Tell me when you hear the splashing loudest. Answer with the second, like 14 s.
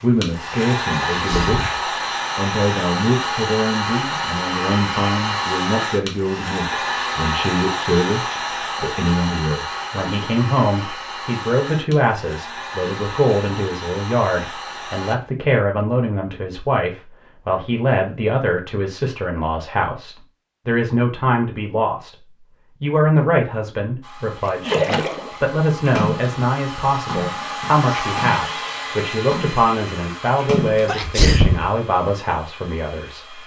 25 s.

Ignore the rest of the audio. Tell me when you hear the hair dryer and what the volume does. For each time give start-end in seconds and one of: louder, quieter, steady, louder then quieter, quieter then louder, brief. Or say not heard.
0.0-15.2 quieter
24.0-33.4 louder then quieter.